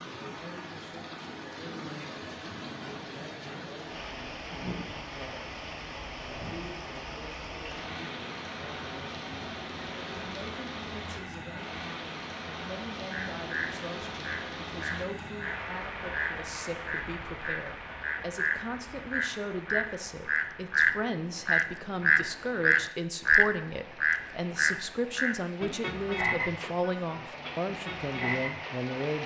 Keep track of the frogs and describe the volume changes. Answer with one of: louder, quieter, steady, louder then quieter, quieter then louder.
louder then quieter.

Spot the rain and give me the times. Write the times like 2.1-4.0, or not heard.
0.0-29.2.